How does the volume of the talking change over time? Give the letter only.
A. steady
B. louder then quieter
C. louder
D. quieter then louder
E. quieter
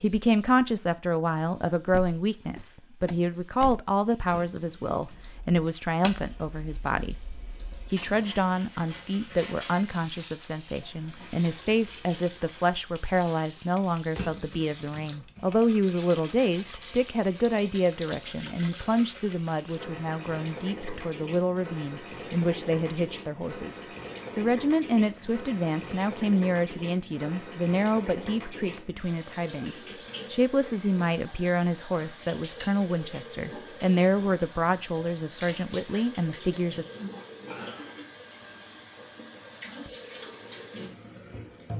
A.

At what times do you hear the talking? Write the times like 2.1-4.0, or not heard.
0.0-36.9.